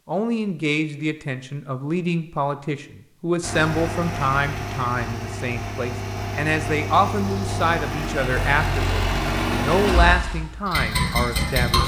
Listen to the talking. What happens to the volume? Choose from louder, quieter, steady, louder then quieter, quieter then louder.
steady.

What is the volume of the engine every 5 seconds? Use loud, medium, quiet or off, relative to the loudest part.
medium, loud, loud.